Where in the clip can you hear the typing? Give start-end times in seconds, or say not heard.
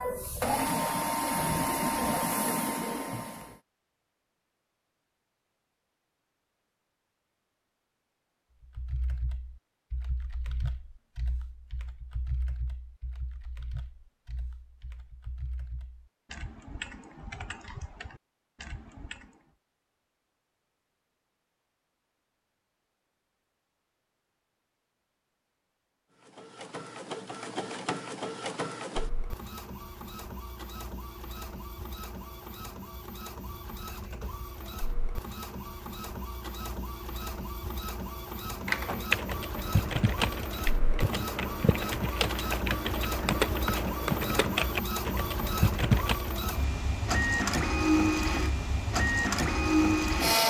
8.6-19.4, 38.6-46.4.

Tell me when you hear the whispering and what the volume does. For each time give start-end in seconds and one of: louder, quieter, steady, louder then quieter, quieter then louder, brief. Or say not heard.
not heard.